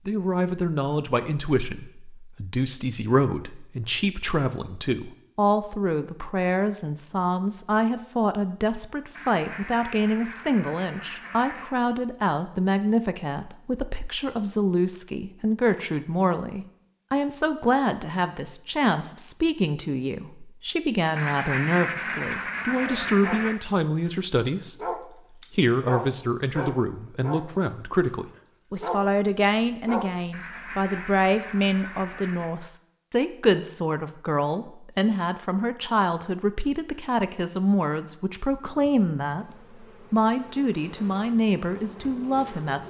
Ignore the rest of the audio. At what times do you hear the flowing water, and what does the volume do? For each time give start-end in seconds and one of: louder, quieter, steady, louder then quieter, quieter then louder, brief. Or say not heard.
not heard.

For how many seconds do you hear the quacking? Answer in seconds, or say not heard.
7 s.